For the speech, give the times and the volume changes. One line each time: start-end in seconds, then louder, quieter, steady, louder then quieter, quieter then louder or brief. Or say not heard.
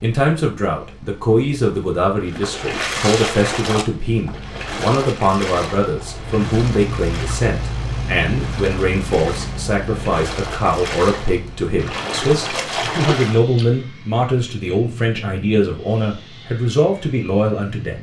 0.0-17.9 steady.